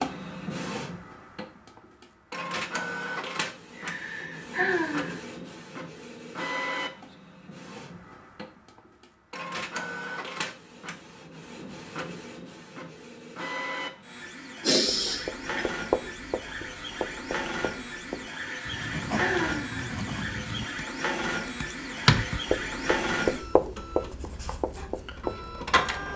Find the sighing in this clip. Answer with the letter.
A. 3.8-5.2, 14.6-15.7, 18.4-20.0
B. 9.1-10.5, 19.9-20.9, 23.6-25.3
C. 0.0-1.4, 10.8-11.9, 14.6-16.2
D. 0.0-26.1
A.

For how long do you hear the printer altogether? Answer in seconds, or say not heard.
26 s.